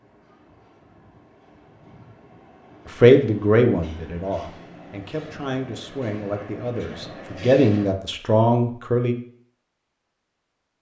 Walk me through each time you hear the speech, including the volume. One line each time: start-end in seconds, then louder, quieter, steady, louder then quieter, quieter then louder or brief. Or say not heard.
2.9-9.2 quieter then louder.